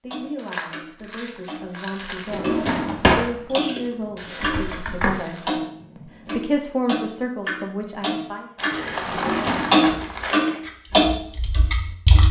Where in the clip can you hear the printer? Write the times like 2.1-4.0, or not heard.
not heard.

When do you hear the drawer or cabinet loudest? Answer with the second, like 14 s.
3 s.